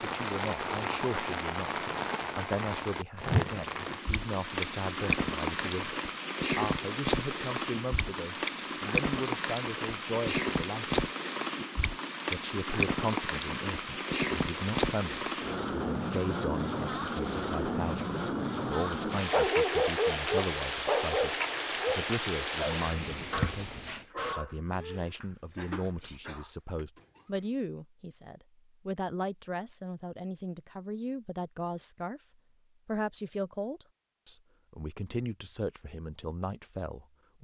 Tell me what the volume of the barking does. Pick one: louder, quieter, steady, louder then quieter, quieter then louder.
quieter.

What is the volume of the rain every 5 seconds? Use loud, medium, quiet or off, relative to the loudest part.
loud, loud, loud, loud, loud, off, off, off.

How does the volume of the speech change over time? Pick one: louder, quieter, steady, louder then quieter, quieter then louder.
steady.